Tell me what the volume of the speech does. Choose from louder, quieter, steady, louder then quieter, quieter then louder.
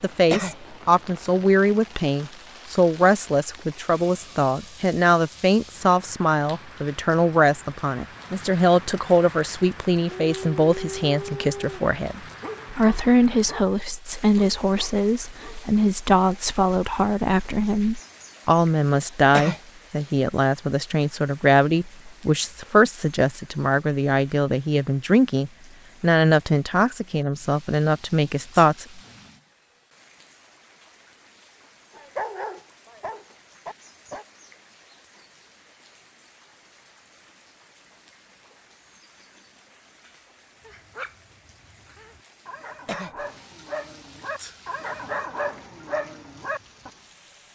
steady.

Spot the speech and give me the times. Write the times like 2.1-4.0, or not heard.
0.0-29.0.